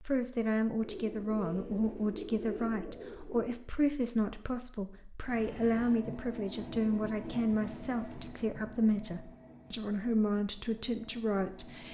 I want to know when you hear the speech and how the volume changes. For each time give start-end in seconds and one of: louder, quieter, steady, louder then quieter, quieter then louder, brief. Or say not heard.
0.0-11.8 steady.